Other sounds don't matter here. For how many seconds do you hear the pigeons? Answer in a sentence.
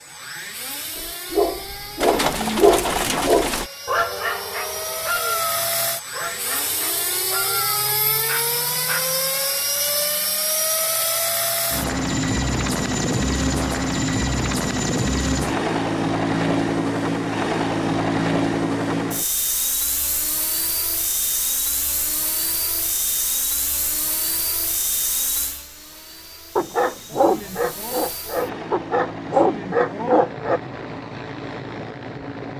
The pigeons can be heard for 2 seconds in total.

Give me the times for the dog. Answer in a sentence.
You can hear the dog from 0.9 to 9.2 s and from 26.6 to 30.6 s.